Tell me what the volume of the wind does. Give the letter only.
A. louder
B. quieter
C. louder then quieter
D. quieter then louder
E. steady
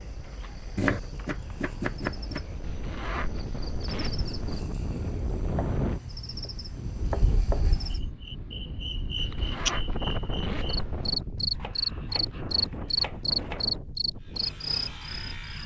C.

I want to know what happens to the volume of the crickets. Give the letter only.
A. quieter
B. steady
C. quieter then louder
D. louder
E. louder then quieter
D.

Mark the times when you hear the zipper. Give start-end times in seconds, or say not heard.
2.6-4.6, 9.2-11.2.